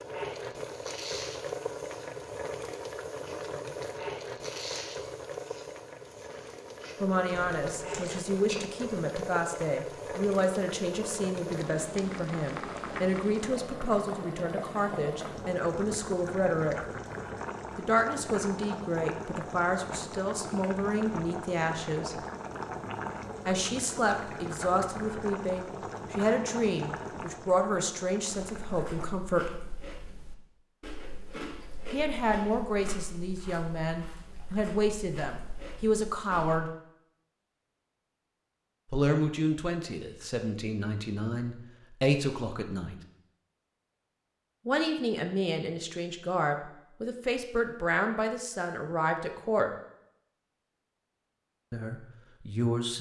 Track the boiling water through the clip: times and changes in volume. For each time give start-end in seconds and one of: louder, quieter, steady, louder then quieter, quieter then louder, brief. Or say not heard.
0.0-29.2 steady.